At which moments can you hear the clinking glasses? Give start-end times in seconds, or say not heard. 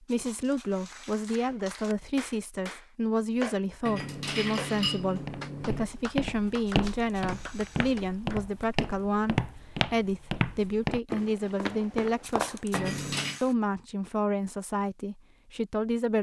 3.9-5.8, 12.7-13.4.